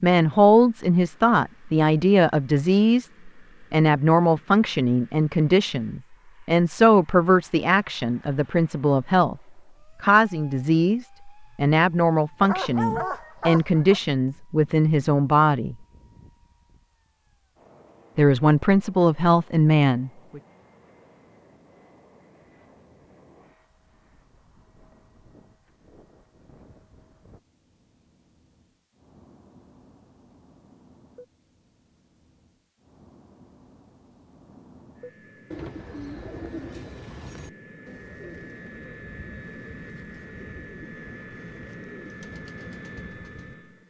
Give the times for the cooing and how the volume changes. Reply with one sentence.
The cooing can be heard from 35.5 to 43.5 s, getting quieter.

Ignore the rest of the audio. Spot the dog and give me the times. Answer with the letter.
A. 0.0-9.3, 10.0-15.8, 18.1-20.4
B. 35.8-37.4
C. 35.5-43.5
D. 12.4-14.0
D.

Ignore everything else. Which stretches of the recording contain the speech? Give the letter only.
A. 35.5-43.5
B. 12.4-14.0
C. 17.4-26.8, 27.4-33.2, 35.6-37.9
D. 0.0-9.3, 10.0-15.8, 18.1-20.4
D.